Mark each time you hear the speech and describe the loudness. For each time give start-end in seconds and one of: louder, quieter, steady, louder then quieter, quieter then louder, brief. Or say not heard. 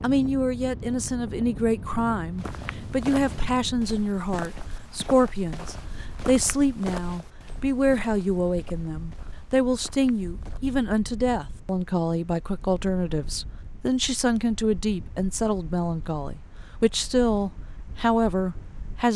0.0-19.1 steady.